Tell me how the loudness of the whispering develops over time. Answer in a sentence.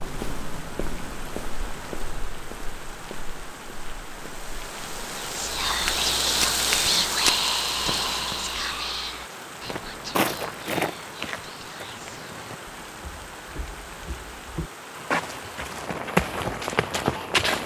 The loudness of the whispering goes down.